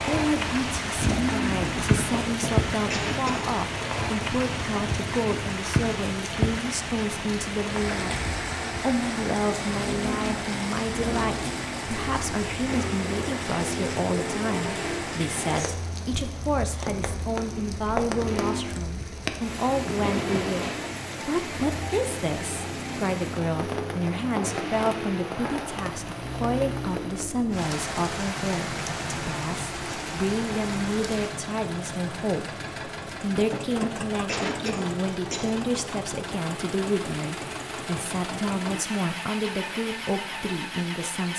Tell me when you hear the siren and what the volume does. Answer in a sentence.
The siren can't be heard in this clip.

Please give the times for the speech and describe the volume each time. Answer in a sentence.
The speech can be heard from 0.0 to 41.3 s, at a steady volume.